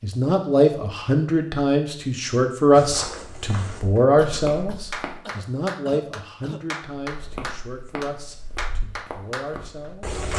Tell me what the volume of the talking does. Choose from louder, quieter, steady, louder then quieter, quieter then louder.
quieter.